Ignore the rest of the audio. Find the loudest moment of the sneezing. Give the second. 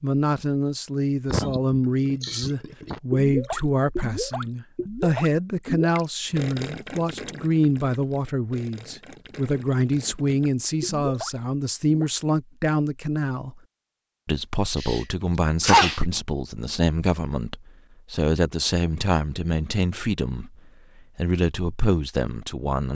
16 s.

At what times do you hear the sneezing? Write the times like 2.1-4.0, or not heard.
1.3-3.0, 14.8-16.0.